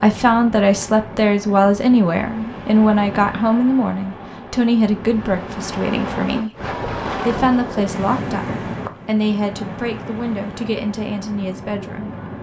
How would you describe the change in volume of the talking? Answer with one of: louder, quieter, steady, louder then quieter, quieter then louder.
quieter.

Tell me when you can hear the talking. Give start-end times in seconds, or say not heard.
0.0-6.5, 7.2-12.2.